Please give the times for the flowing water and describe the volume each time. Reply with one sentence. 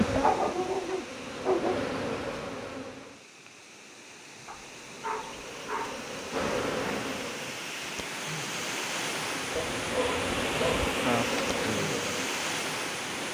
The flowing water can be heard from 0.0 to 13.2 s, getting louder.